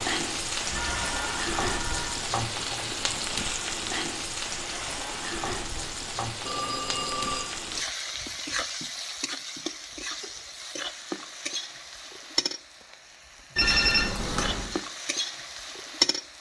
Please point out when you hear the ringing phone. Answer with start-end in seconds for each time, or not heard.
0.7-2.2, 6.4-7.6, 13.6-14.8.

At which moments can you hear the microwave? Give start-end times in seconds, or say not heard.
not heard.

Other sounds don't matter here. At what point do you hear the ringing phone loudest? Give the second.
14 s.